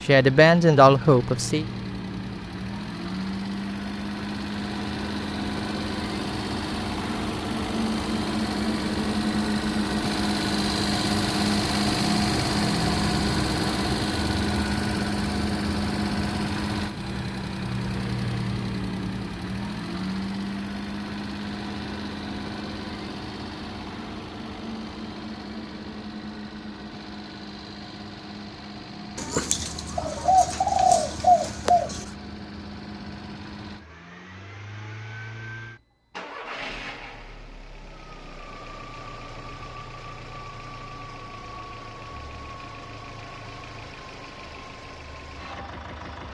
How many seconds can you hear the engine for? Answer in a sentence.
The engine can be heard for 46 seconds in total.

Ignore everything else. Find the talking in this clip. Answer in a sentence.
You can hear the talking from 0.0 to 1.6 s.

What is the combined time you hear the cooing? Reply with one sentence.
The cooing can be heard for 3 seconds in total.